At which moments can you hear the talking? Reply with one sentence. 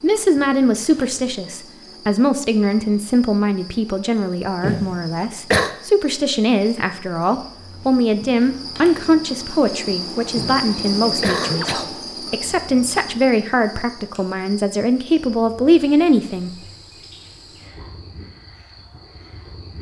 You can hear the talking from 0.0 to 16.5 s.